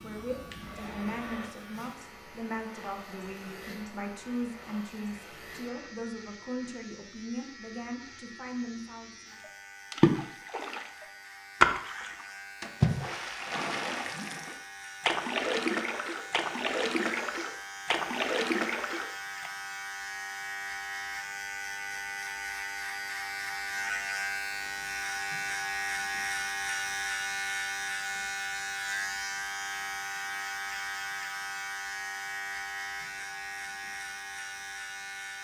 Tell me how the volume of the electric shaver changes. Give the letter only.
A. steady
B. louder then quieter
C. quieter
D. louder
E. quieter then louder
D.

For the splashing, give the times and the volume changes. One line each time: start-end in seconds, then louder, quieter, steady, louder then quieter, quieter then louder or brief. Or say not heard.
9.4-19.5 quieter.